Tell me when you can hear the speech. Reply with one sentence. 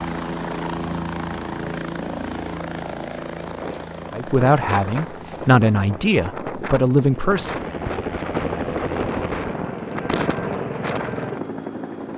The speech can be heard from 4.1 to 7.6 s.